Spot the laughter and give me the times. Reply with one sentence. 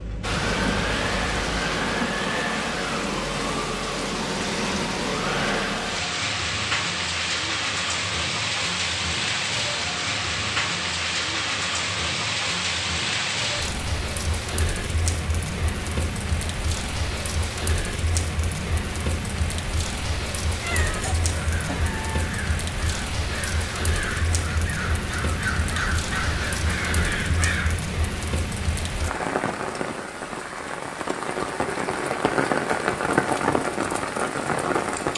You can't hear the laughter here.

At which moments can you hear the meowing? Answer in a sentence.
The meowing can be heard from 20.6 to 22.3 s.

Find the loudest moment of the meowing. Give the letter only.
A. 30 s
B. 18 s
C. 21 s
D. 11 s
C.